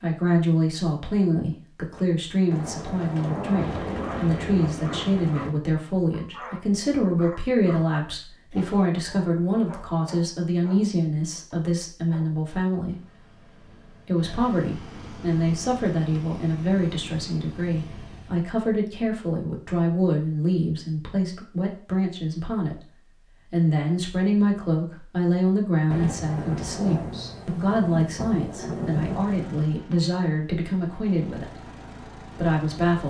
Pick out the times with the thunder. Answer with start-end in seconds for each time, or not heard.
2.5-5.5, 25.9-29.3.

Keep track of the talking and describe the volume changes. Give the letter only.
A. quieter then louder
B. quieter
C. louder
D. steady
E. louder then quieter
D.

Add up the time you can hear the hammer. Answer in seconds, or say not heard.
not heard.